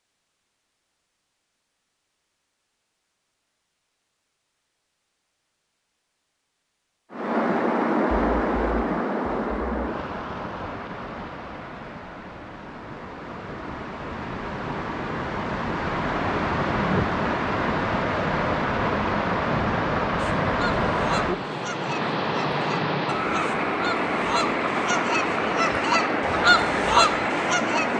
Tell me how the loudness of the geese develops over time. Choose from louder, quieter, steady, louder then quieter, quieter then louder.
louder.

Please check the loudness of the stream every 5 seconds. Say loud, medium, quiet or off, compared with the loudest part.
off, loud, medium, loud, loud, loud.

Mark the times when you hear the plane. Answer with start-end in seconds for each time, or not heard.
not heard.